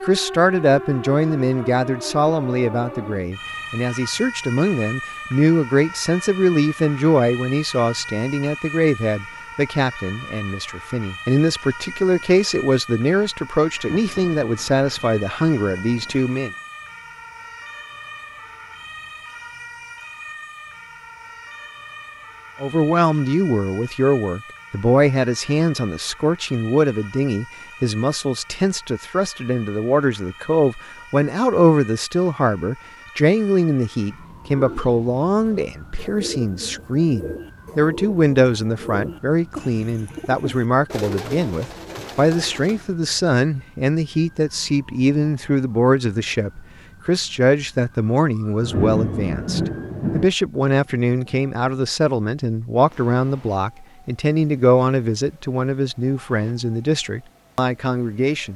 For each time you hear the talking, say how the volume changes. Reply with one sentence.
The talking can be heard from 0.0 to 16.5 s, at a steady volume; and from 22.6 to 58.5 s, at a steady volume.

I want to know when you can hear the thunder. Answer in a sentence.
You can hear the thunder from 13.7 to 16.6 s and from 48.6 to 50.3 s.